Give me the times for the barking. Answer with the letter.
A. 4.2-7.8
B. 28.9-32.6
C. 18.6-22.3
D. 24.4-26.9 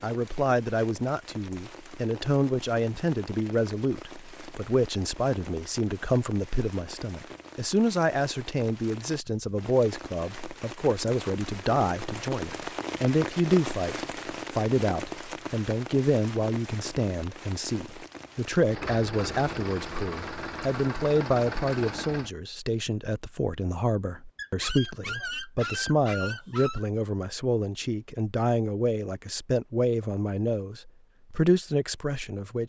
D.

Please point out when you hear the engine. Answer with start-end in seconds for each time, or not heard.
18.6-22.3.